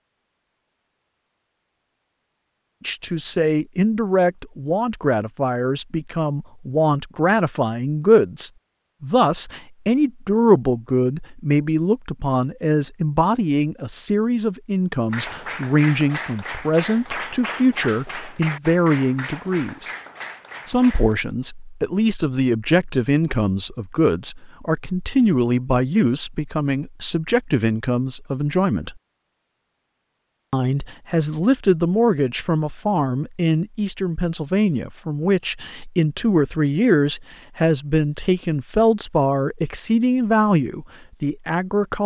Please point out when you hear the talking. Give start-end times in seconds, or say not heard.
2.8-19.9, 20.6-29.0, 30.5-42.0.